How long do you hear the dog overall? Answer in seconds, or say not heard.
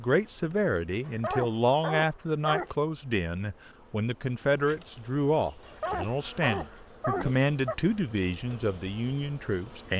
4 s.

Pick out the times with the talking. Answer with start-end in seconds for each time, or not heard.
0.0-9.9.